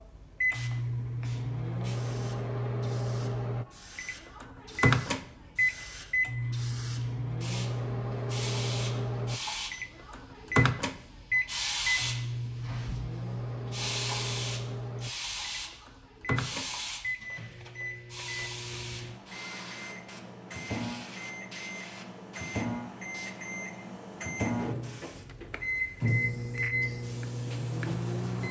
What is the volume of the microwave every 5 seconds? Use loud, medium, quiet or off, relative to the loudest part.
loud, loud, loud, medium, medium, loud.